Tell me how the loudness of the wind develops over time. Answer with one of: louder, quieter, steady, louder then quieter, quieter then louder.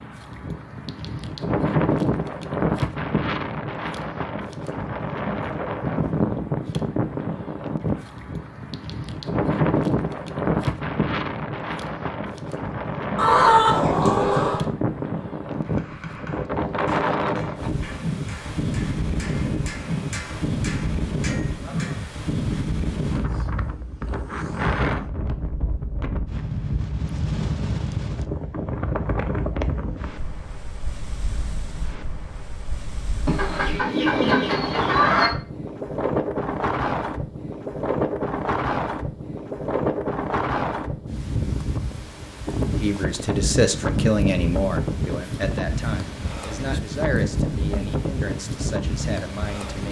steady.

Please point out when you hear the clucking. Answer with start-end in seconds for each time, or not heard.
13.2-14.7, 33.2-35.3.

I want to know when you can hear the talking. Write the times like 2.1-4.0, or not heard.
42.8-49.8.